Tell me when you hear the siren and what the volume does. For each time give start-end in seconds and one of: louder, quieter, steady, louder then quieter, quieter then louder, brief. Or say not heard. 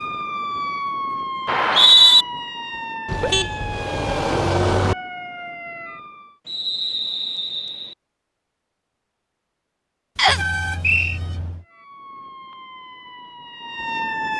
0.0-6.4 quieter
11.6-14.3 brief.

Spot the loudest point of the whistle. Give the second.
2 s.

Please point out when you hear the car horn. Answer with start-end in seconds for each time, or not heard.
3.0-5.0, 10.2-11.7.